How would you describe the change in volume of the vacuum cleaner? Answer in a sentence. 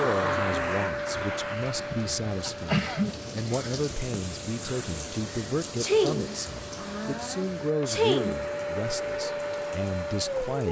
The volume of the vacuum cleaner goes down, then up.